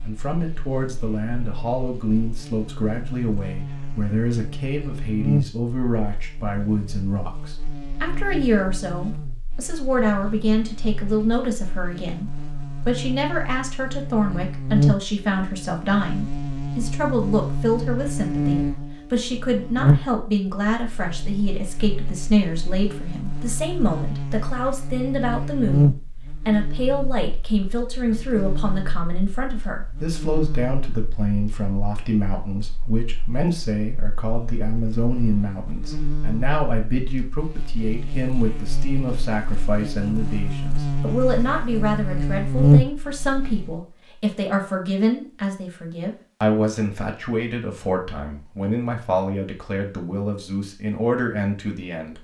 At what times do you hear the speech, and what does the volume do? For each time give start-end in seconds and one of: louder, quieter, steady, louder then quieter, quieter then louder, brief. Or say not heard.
0.0-52.1 steady.